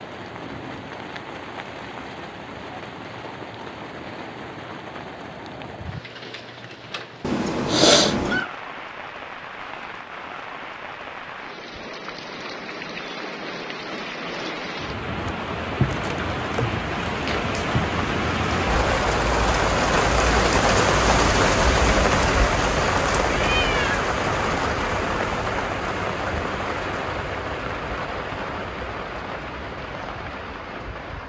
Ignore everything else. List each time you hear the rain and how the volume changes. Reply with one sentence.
You can hear the rain from 0.0 to 31.2 s, getting louder then quieter.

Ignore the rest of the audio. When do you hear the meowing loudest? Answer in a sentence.
The volume of the meowing peaks at 8 seconds.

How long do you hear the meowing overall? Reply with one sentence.
You can hear the meowing for 2 seconds altogether.